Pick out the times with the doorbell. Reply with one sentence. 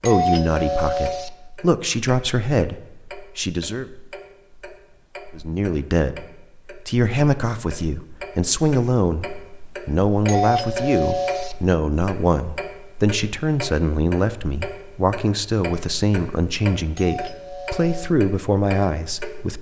You can hear the doorbell from 0.1 to 1.3 s, from 10.2 to 11.6 s and from 16.9 to 18.1 s.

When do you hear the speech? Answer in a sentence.
You can hear the speech from 0.0 to 3.9 s, from 5.3 to 9.2 s and from 9.8 to 19.5 s.